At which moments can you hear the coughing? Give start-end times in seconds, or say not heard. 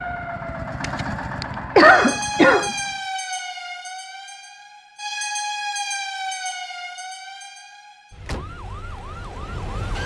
0.8-2.7.